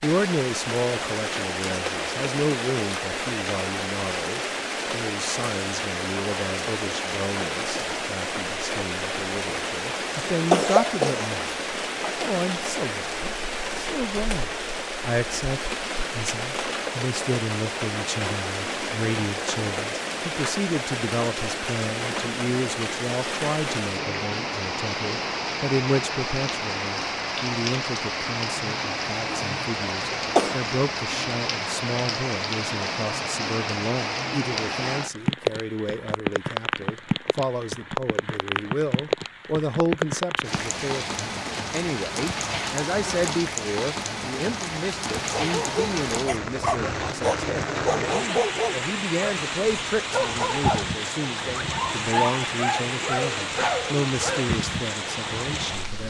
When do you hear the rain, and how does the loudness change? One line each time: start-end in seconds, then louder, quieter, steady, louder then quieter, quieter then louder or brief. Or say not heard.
0.0-56.0 steady.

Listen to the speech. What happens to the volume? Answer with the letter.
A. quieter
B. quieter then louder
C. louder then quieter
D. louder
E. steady
E.